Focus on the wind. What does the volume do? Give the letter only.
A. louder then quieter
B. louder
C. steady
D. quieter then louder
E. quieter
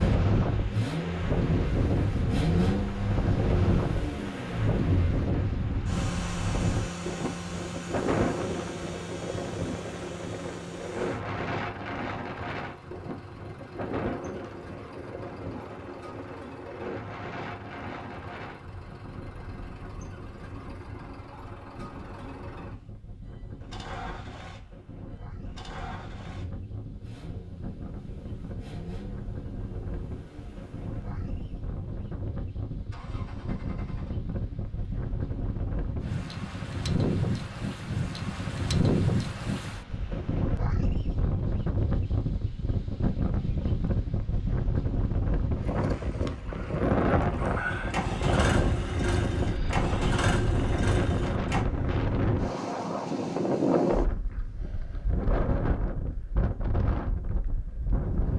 D.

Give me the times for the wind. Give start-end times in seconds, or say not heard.
0.0-58.3.